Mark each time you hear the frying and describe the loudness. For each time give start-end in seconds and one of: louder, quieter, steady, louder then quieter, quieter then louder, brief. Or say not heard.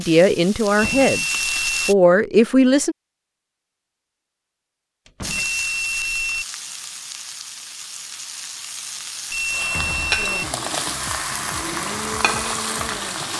0.0-1.9 brief
5.2-13.3 louder.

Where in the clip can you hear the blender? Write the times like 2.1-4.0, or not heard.
10.2-13.3.